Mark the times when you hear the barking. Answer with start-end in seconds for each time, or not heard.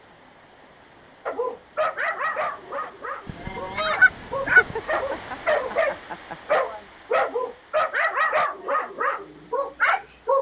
1.2-10.3.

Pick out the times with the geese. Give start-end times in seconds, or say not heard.
3.2-4.8.